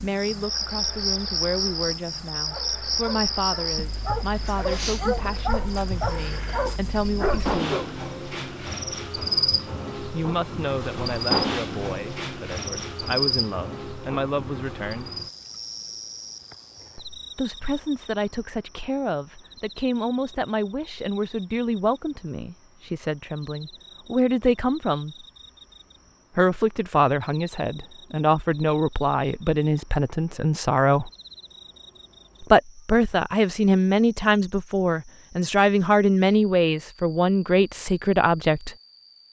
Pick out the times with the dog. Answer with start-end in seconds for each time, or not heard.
2.5-7.9.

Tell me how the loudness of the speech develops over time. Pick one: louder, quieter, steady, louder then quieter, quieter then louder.
louder.